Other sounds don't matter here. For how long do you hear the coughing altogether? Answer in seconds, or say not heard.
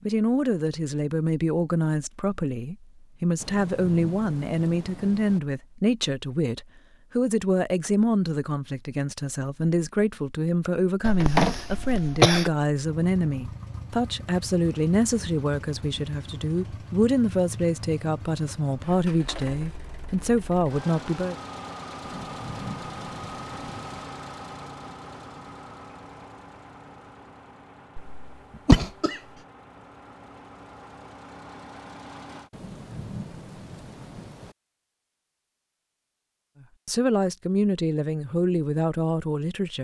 3 s.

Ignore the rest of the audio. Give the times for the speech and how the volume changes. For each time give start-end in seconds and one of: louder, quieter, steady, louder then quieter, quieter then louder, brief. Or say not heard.
0.0-21.4 steady
36.9-39.7 brief.